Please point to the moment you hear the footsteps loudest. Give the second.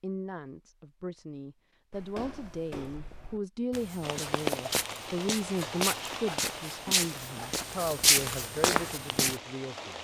8 s.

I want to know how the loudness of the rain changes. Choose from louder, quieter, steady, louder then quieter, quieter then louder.
quieter.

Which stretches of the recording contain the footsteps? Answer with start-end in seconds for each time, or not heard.
1.9-9.4.